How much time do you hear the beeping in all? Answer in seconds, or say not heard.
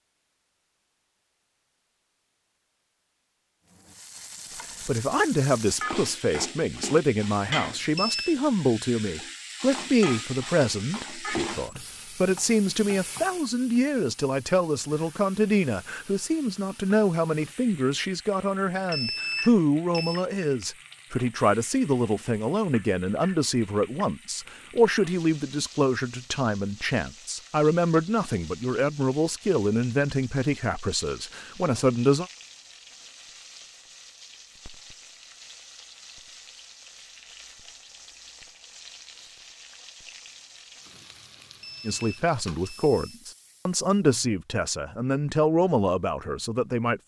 4 s.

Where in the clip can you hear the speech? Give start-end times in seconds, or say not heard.
4.8-32.2, 41.9-47.0.